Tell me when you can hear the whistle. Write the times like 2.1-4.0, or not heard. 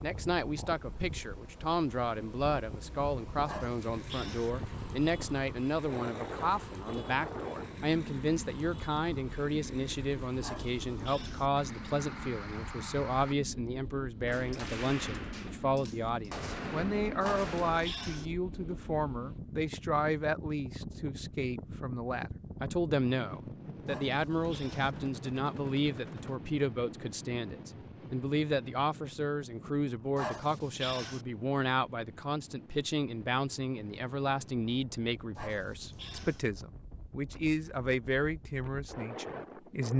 not heard.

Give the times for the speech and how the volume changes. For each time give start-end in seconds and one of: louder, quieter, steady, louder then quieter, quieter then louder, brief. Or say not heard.
0.0-39.9 steady.